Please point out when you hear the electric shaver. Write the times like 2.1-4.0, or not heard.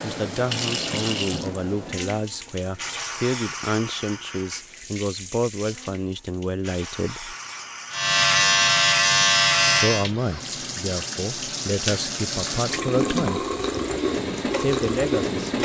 7.9-10.1.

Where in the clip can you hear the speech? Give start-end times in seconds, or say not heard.
0.0-7.3, 9.6-13.4, 14.5-15.4.